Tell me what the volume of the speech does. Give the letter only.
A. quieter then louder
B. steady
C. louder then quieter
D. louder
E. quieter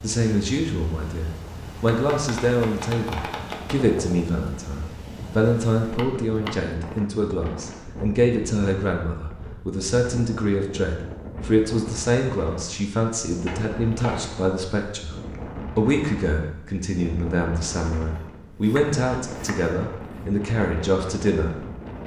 B.